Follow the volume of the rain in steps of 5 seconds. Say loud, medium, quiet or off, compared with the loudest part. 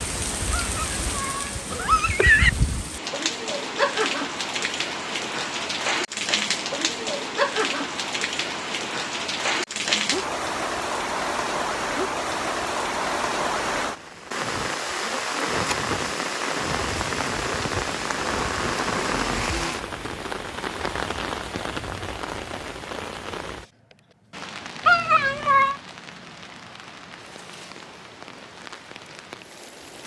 loud, loud, loud, loud, medium, quiet.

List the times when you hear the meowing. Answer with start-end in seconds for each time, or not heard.
0.5-2.5, 24.9-25.8.